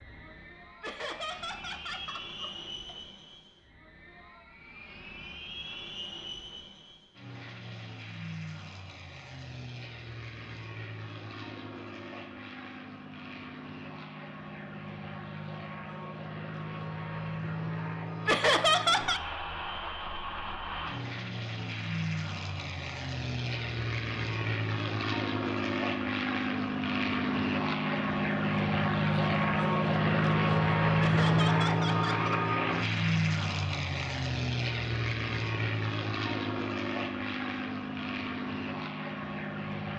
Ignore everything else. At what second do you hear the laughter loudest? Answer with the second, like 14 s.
19 s.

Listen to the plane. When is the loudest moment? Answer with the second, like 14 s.
31 s.